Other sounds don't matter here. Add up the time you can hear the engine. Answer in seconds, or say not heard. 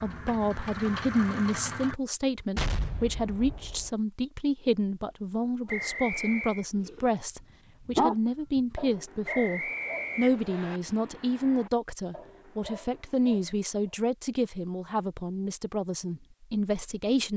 2 s.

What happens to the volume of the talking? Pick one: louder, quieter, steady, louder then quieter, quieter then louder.
steady.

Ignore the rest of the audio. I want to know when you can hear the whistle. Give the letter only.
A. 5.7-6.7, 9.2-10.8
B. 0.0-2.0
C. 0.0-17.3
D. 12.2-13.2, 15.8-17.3
A.